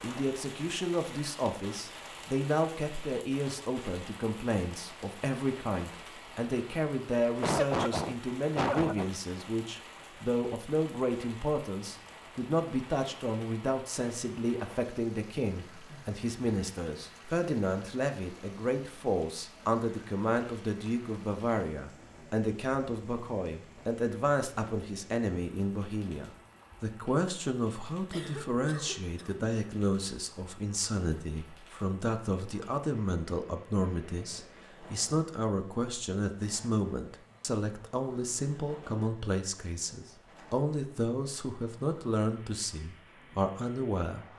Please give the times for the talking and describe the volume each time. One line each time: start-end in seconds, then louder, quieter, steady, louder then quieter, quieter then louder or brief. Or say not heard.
0.0-44.2 steady.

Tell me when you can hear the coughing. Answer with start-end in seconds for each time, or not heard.
7.4-9.1, 28.1-29.3.